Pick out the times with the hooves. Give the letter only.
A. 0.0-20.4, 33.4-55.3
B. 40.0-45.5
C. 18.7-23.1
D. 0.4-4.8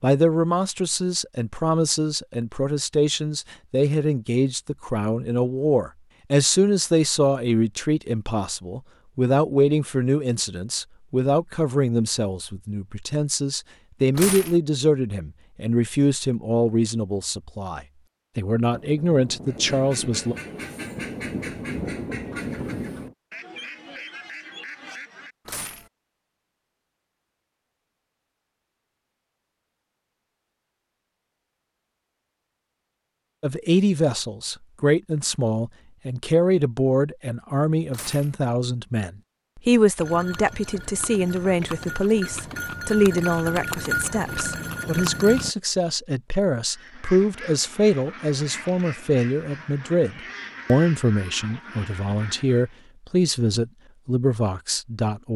B.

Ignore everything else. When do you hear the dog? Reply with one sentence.
The dog can't be heard in this clip.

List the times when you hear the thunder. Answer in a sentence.
You can hear the thunder from 18.7 to 23.1 s.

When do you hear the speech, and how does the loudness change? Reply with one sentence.
You can hear the speech from 0.0 to 20.4 s, at a steady volume; and from 33.4 to 55.3 s, at a steady volume.